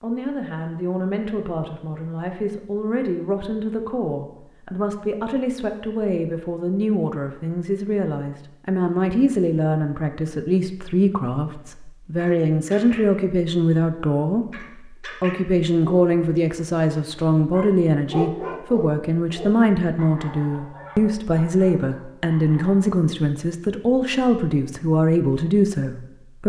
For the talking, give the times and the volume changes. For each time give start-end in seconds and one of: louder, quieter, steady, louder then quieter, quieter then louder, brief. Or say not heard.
0.0-26.4 louder.